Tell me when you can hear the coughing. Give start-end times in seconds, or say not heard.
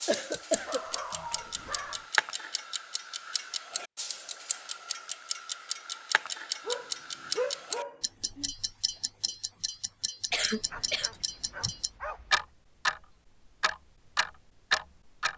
0.1-0.8, 10.3-11.8.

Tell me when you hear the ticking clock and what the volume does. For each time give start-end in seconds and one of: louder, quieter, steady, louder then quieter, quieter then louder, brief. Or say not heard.
0.0-15.3 quieter then louder.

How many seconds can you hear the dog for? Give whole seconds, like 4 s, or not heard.
5 s.